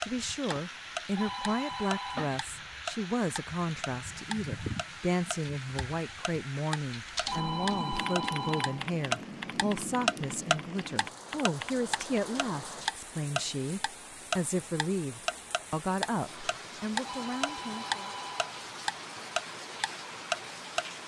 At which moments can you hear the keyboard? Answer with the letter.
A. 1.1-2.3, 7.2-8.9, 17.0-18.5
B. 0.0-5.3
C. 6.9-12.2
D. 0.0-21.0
C.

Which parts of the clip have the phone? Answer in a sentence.
You can hear the phone from 1.1 to 2.3 s, from 7.2 to 8.9 s and from 17.0 to 18.5 s.